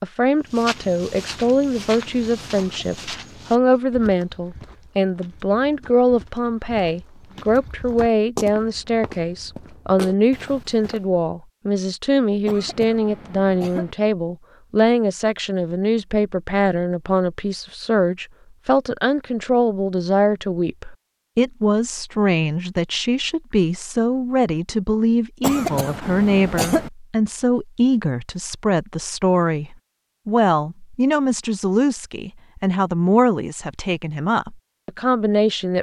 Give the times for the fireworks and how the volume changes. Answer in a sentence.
You can't hear the fireworks here.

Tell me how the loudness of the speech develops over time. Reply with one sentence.
The volume of the speech stays about the same.